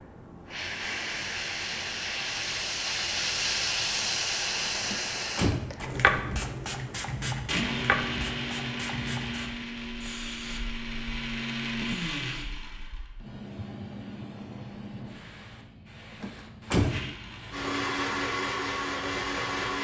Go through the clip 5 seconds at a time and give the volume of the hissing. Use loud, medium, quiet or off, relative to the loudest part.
loud, loud, medium, quiet.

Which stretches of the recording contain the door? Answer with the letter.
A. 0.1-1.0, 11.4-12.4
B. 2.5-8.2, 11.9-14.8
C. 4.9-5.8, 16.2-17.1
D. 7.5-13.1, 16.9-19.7
C.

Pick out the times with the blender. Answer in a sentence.
You can hear the blender from 7.5 to 13.1 s and from 16.9 to 19.7 s.